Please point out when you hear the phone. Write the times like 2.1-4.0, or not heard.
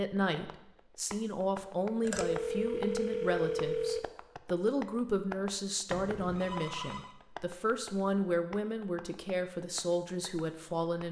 2.0-4.0, 5.9-7.1.